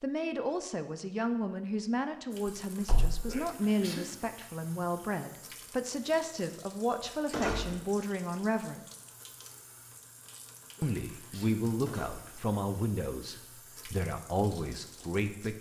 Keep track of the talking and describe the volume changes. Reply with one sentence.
The volume of the talking stays about the same.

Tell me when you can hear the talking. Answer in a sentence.
You can hear the talking from 0.0 to 8.8 s and from 10.8 to 15.5 s.